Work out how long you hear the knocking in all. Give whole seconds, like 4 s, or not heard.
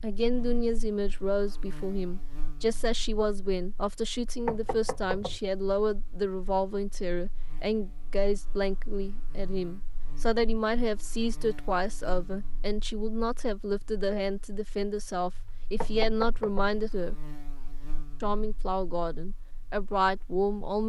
2 s.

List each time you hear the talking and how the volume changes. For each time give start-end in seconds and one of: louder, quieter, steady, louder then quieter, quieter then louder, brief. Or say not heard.
0.0-17.1 steady
18.2-20.8 brief.